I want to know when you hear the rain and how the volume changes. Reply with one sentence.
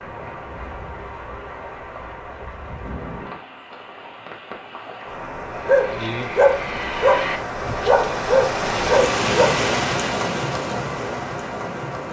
You can hear the rain from 0.0 to 12.0 s, getting louder.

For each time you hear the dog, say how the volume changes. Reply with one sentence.
You can hear the dog from 5.5 to 9.6 s, getting quieter then louder.